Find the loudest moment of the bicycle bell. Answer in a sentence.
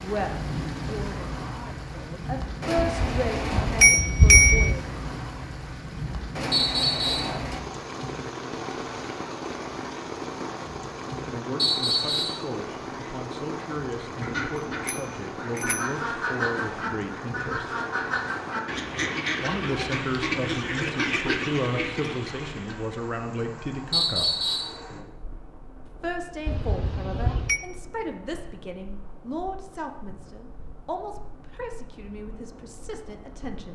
The volume of the bicycle bell peaks at 4 seconds.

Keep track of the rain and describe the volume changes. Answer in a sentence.
The volume of the rain goes down.